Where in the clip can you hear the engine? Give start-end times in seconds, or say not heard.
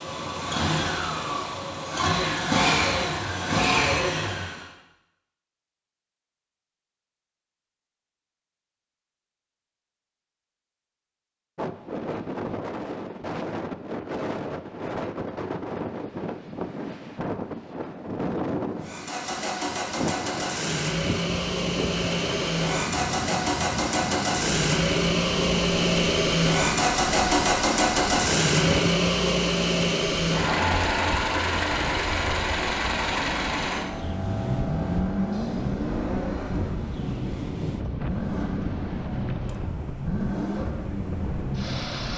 0.0-4.7, 18.8-42.1.